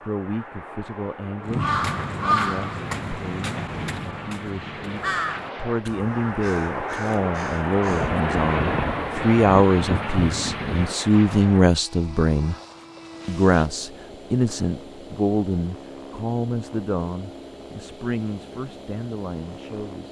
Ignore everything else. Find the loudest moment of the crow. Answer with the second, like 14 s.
2 s.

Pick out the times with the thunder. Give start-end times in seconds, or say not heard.
7.8-10.9.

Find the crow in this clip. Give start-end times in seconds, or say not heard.
1.4-8.2.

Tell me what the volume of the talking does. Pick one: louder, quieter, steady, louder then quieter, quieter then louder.
louder then quieter.